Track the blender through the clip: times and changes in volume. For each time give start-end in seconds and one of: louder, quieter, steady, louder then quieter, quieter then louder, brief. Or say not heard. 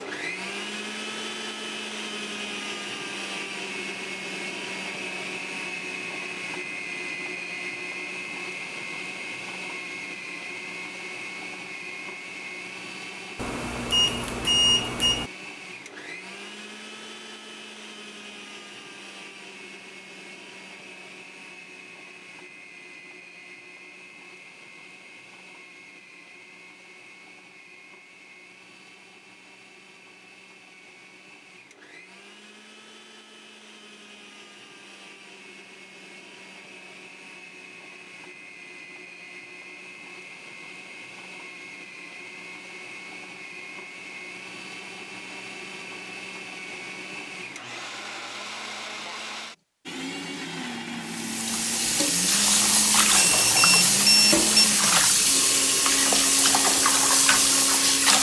0.0-58.1 quieter then louder.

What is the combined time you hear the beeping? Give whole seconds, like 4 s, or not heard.
3 s.